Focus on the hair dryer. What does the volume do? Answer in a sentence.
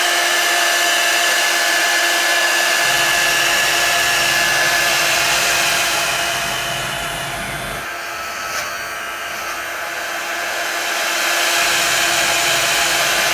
The loudness of the hair dryer goes down, then up.